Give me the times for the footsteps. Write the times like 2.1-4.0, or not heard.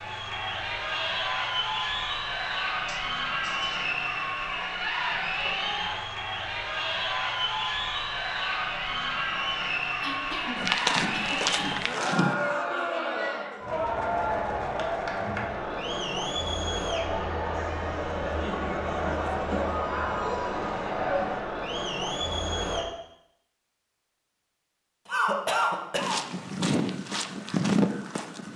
10.6-12.3, 25.9-28.5.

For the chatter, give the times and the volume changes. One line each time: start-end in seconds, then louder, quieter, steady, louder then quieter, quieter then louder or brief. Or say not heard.
0.0-22.9 steady.